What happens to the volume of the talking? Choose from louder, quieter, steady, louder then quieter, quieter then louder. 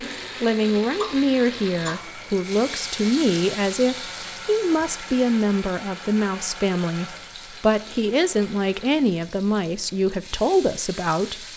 steady.